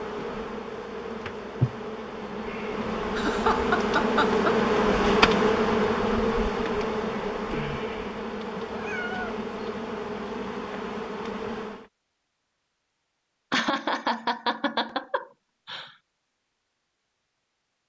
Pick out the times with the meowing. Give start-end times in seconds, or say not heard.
8.6-9.4.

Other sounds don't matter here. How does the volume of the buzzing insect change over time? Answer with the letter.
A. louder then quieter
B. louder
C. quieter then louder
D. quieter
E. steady
A.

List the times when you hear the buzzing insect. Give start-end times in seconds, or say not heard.
0.0-11.9.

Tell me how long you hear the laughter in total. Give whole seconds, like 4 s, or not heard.
4 s.